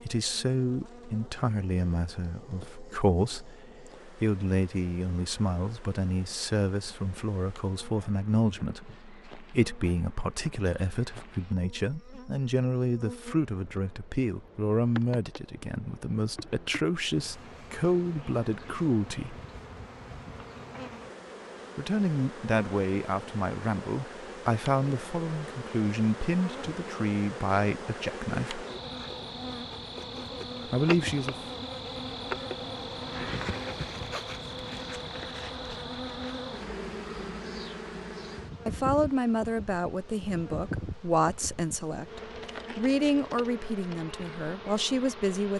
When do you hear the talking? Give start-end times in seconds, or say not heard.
0.1-19.4, 21.8-28.6, 30.6-31.4, 38.6-45.5.